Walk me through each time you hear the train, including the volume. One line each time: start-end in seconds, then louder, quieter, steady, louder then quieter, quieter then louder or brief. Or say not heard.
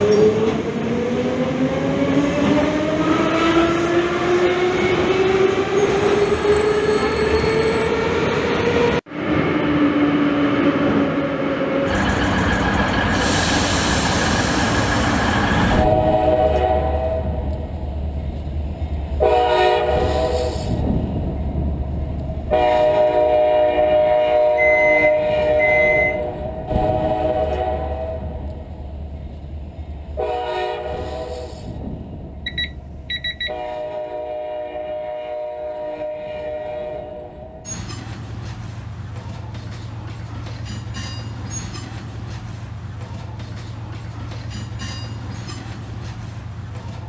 0.0-47.0 quieter.